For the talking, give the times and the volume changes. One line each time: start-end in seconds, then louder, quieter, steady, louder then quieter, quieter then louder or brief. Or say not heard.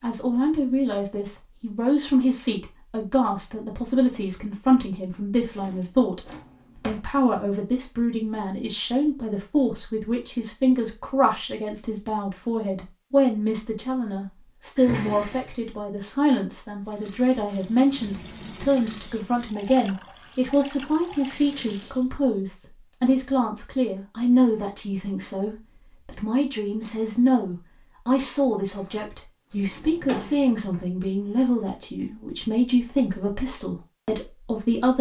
0.0-34.9 steady.